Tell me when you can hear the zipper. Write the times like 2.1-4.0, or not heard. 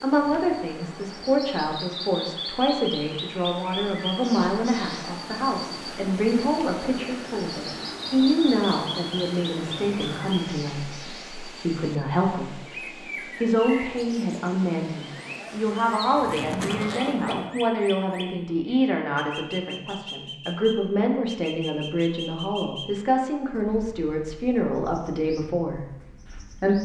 9.8-10.3, 16.1-17.5.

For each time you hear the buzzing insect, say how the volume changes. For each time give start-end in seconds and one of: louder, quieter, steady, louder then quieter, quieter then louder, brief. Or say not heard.
not heard.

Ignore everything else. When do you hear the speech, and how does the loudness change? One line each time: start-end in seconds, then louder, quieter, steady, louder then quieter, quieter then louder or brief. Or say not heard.
0.0-26.7 steady.